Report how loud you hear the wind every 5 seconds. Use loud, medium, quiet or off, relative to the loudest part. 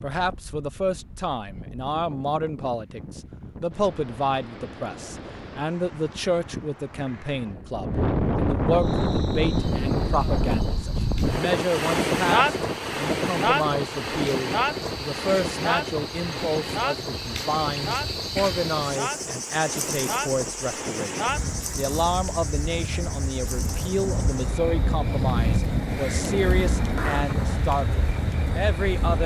quiet, loud, loud, medium, medium, loud.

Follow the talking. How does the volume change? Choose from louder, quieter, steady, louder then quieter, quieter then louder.
steady.